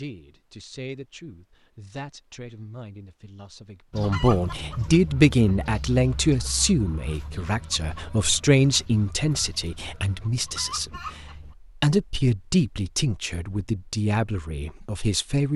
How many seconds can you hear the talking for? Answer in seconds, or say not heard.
15 s.